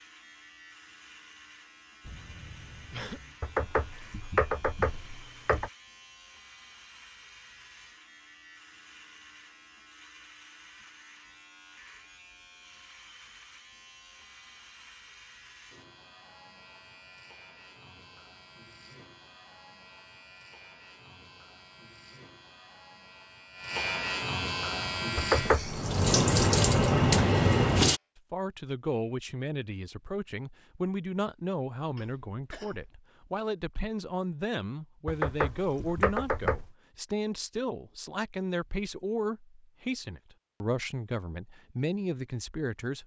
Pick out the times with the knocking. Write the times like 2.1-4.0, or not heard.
3.4-5.7, 25.1-25.8, 35.0-36.6.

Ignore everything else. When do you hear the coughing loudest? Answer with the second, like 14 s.
3 s.